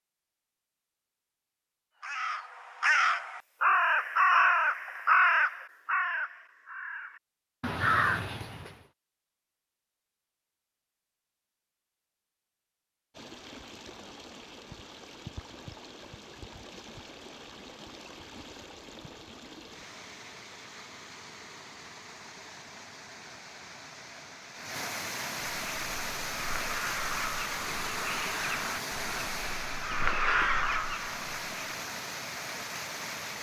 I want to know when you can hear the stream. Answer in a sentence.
You can hear the stream from 13.1 to 33.3 s.